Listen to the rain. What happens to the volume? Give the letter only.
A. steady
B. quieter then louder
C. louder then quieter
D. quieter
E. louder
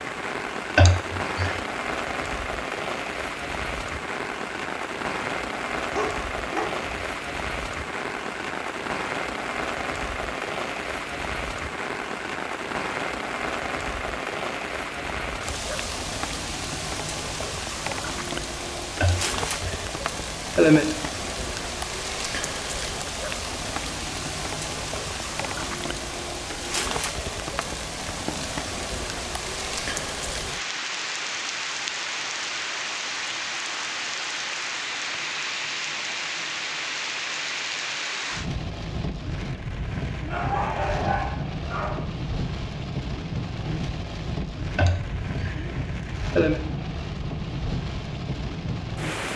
A.